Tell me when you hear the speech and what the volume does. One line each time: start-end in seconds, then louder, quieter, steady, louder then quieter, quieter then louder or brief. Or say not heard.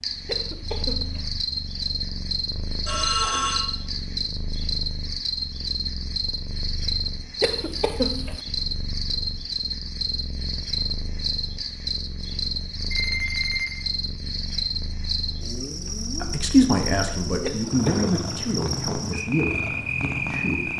16.1-20.7 quieter.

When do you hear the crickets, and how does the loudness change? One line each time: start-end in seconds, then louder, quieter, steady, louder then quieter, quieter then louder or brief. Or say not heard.
0.0-20.7 steady.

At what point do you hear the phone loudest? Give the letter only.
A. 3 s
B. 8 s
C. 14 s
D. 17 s
A.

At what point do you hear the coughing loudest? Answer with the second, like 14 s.
8 s.